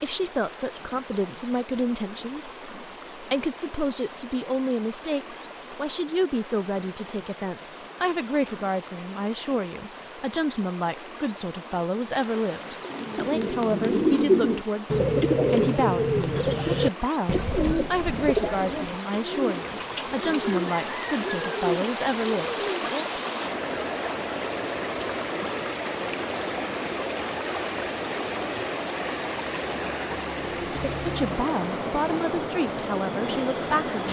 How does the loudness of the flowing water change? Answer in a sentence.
The loudness of the flowing water goes up.